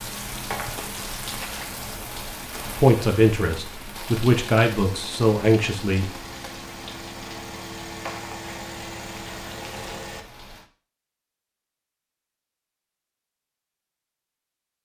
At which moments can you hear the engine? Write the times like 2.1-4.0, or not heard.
4.8-10.2.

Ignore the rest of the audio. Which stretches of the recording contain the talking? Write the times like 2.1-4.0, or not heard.
2.8-6.1.